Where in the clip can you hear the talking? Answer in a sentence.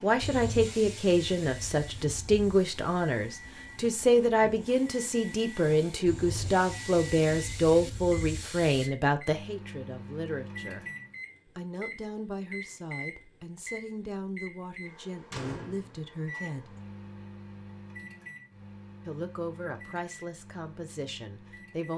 The talking can be heard from 0.0 to 10.8 s, from 11.6 to 16.8 s and from 19.1 to 21.9 s.